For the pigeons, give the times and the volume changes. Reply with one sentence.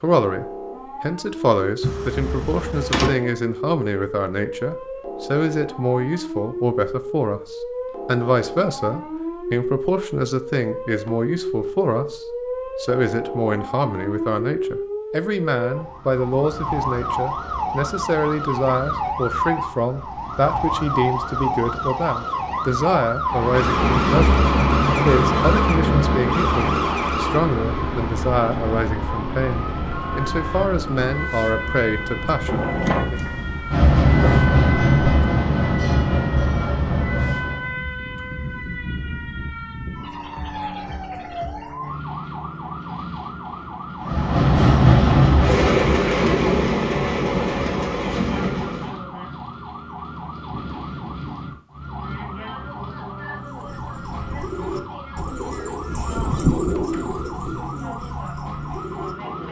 The pigeons can be heard from 53.4 to 59.4 s, getting louder then quieter.